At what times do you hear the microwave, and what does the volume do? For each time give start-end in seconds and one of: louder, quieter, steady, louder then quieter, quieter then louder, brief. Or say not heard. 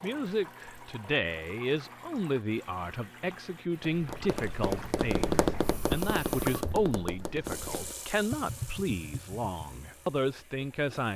not heard.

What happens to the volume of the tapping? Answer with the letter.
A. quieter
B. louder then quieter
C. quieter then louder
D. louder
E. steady
A.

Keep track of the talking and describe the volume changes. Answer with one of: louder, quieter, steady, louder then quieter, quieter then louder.
steady.